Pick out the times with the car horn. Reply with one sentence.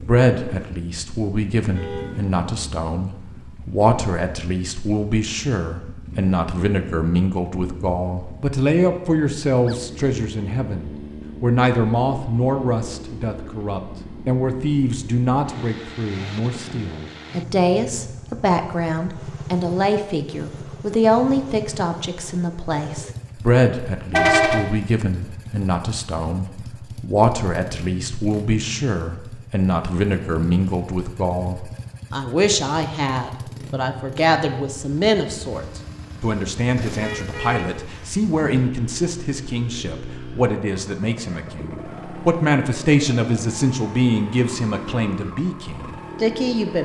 The car horn can be heard from 1.6 to 2.1 s, from 24.1 to 24.6 s and from 37.0 to 38.1 s.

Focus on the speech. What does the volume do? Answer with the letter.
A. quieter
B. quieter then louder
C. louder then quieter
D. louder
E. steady
E.